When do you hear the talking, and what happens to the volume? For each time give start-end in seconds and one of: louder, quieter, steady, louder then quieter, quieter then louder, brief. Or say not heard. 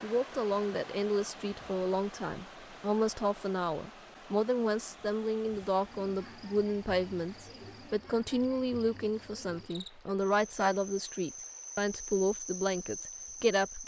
0.0-13.8 steady.